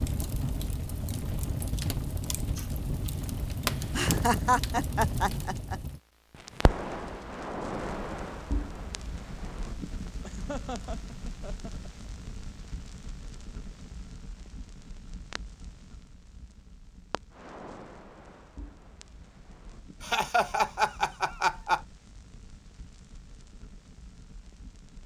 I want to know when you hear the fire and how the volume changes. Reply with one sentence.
You can hear the fire from 0.0 to 25.0 s, getting quieter.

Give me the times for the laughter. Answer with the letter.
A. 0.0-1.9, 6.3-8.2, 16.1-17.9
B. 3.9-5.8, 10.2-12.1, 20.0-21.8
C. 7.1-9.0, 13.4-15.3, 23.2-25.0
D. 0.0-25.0
B.